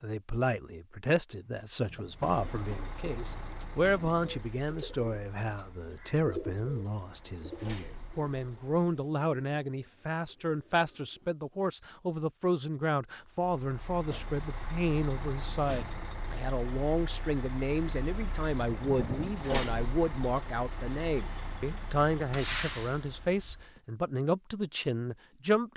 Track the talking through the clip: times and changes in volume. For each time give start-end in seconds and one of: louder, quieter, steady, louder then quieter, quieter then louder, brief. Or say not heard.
0.0-25.7 steady.